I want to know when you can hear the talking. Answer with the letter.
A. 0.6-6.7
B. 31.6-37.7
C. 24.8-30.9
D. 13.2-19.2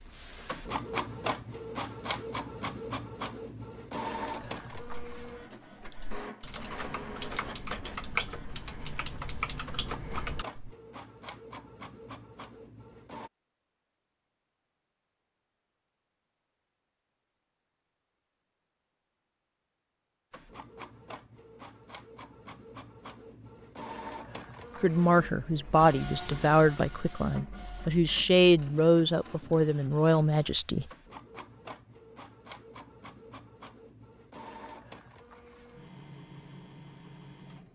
C.